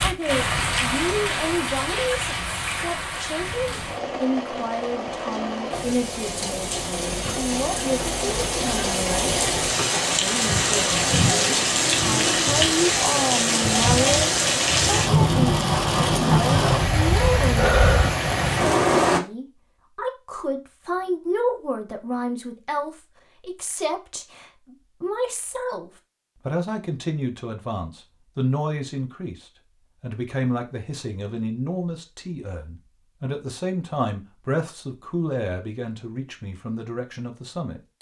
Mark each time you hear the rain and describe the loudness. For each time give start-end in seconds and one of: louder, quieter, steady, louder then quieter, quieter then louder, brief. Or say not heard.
0.0-19.2 louder.